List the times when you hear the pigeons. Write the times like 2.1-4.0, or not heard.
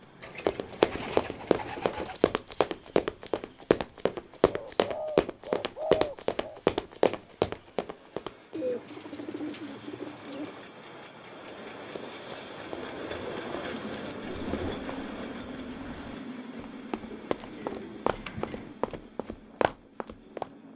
0.2-2.1, 4.5-6.6, 8.5-10.7, 12.7-14.8, 17.1-18.8.